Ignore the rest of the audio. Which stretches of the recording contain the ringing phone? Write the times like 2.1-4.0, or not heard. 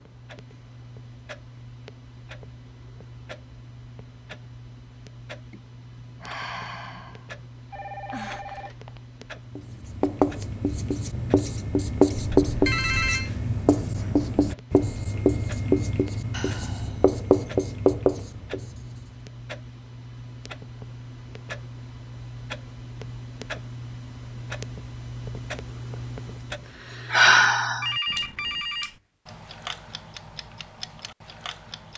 7.7-9.0, 12.2-13.3, 27.8-28.9.